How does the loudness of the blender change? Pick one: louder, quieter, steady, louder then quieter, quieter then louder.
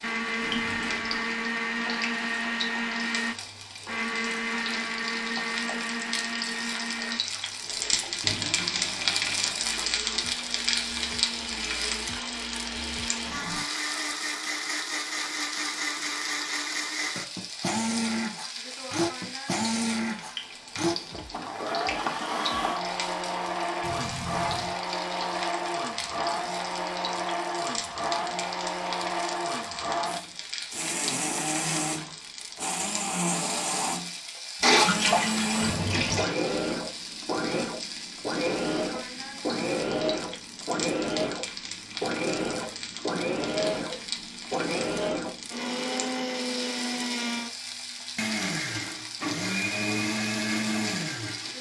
steady.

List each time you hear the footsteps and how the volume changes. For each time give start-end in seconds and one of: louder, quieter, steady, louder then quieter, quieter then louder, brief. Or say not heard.
not heard.